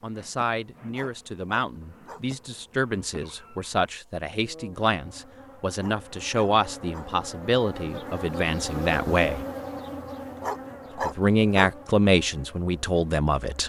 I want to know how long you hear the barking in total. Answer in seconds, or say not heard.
4 s.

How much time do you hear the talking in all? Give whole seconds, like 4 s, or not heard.
12 s.